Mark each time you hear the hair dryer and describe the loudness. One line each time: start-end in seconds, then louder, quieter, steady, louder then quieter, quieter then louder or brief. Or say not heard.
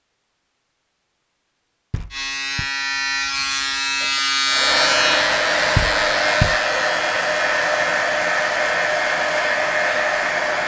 4.5-10.6 steady.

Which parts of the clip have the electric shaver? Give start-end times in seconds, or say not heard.
2.1-10.6.